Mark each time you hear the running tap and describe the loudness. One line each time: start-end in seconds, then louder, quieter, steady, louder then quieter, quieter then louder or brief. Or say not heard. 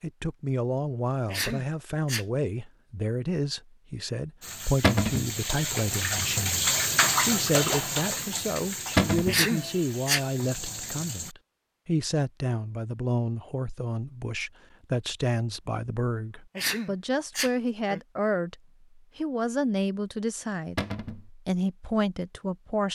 4.4-11.3 louder then quieter.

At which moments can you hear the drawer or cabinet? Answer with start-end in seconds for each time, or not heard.
4.8-5.3, 8.9-9.4, 20.8-21.2.